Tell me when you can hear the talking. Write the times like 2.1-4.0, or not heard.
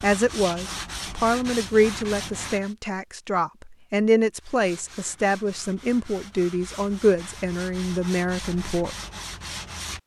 0.0-8.9.